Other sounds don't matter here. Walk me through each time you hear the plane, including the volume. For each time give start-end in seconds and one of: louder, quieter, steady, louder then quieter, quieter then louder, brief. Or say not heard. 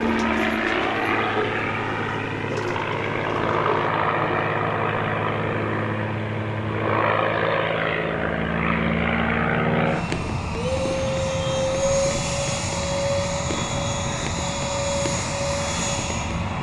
0.0-16.5 steady.